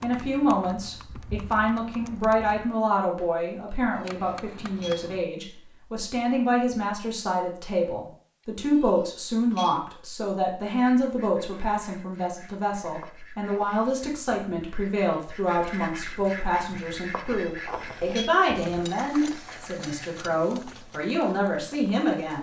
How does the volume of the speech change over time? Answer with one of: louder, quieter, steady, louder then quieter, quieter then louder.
steady.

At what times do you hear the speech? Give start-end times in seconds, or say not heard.
0.0-22.3.